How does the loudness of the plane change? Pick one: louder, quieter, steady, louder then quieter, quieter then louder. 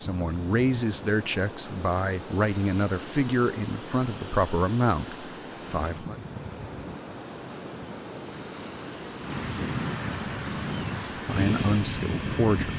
louder.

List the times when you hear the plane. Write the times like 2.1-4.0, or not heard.
0.0-12.7.